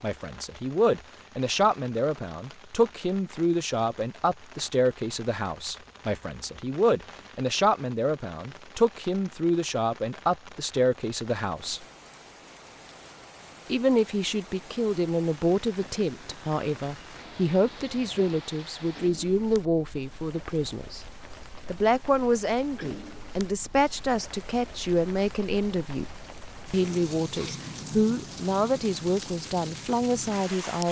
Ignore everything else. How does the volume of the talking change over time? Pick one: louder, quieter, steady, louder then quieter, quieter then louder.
steady.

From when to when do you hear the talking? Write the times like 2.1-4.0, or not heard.
0.0-11.8, 13.7-26.1, 26.7-30.8.